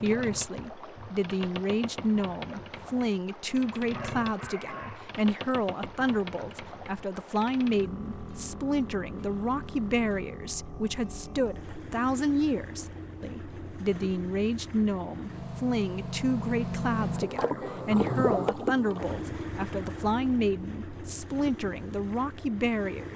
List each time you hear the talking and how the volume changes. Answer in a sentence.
The talking can be heard from 0.0 to 23.1 s, at a steady volume.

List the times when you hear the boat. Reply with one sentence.
The boat can be heard from 0.0 to 23.1 s.